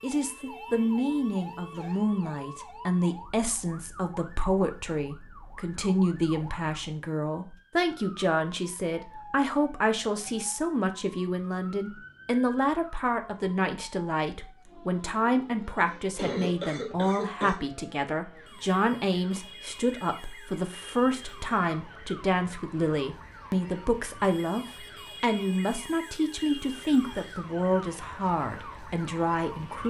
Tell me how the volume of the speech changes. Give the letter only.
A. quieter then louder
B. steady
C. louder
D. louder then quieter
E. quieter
B.